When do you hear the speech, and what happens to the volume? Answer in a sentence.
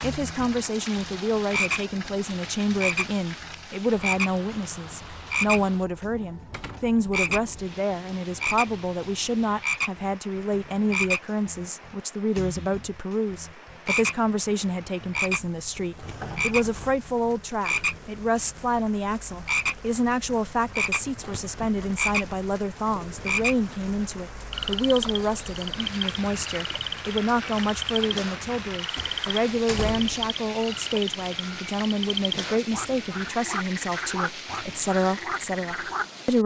You can hear the speech from 0.0 to 36.4 s, at a steady volume.